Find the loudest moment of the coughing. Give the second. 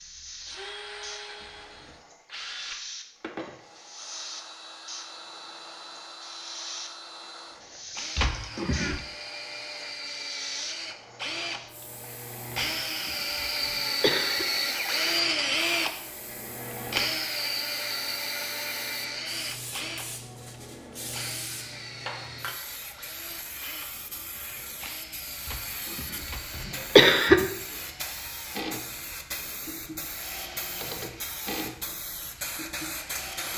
27 s.